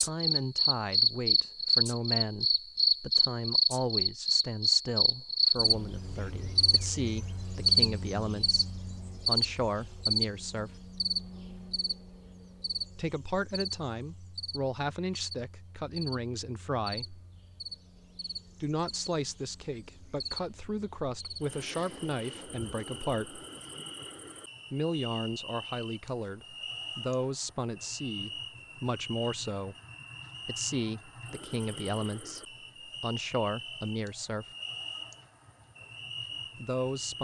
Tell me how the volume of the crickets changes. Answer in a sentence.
The loudness of the crickets goes down.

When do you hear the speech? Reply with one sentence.
You can hear the speech from 0.0 to 10.7 s, from 12.9 to 17.2 s, from 18.6 to 23.4 s, from 24.7 to 29.8 s, from 30.4 to 34.5 s and from 36.5 to 37.1 s.